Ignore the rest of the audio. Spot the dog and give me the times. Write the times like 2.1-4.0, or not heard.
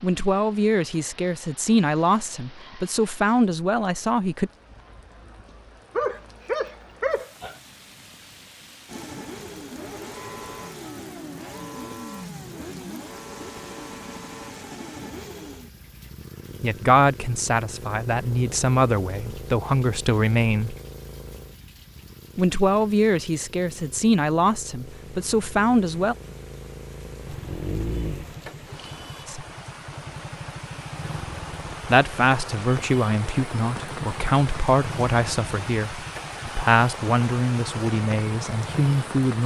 6.0-7.5, 27.3-28.4.